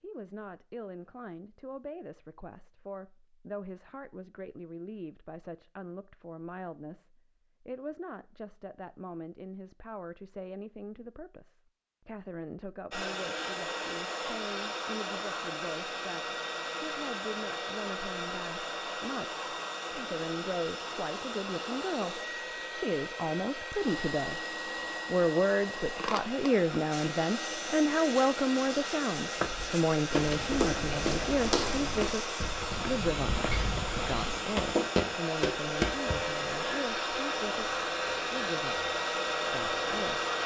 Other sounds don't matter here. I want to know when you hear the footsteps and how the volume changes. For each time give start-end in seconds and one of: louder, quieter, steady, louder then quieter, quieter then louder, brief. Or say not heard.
29.4-36.2 quieter then louder.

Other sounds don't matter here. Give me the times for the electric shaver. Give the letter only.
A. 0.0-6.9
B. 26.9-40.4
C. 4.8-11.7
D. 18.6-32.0
B.